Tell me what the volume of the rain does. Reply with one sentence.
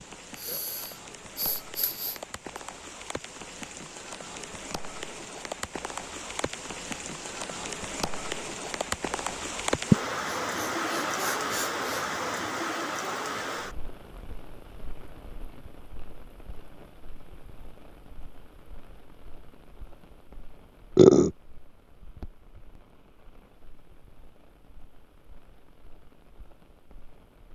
The volume of the rain goes up, then down.